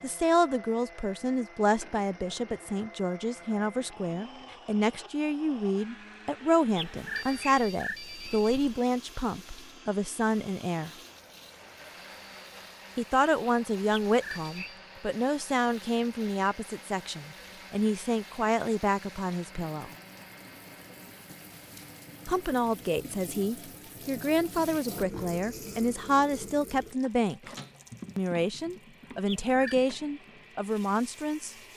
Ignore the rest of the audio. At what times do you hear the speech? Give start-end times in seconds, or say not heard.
0.0-10.9, 12.9-19.9, 22.2-27.5, 28.1-31.6.